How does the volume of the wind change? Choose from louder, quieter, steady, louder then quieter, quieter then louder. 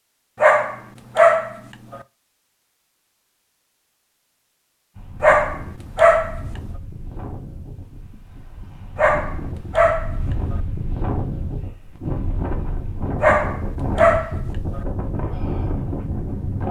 louder.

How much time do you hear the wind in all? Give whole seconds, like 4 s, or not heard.
12 s.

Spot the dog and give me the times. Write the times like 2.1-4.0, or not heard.
0.4-2.0, 5.2-6.4, 8.9-10.6, 13.2-14.8.